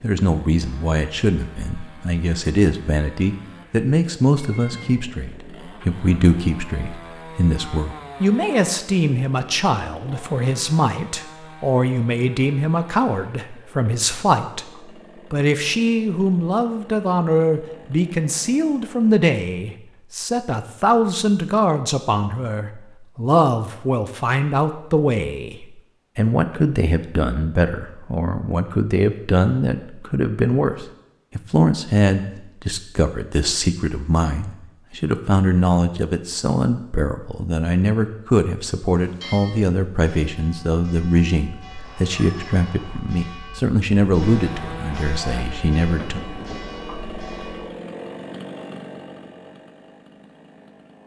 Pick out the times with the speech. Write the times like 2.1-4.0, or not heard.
0.0-14.7, 15.3-46.2.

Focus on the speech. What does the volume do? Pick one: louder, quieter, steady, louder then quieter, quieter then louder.
steady.